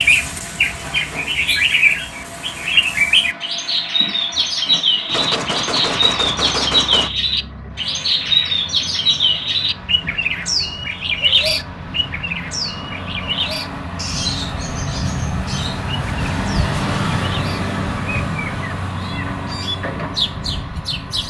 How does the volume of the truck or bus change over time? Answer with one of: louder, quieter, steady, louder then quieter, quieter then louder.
louder.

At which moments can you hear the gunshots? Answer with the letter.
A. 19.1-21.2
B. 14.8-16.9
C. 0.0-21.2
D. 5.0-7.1
D.